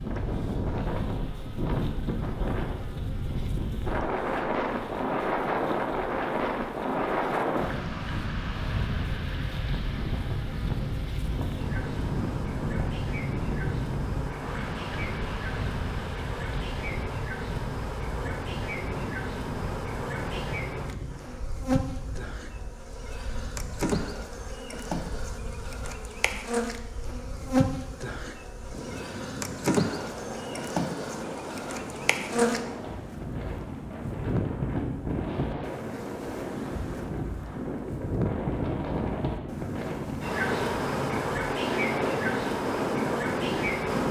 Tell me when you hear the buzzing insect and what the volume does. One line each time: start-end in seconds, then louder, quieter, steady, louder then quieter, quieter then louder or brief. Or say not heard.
0.0-44.0 louder.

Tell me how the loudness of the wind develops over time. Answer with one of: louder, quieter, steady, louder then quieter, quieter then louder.
quieter then louder.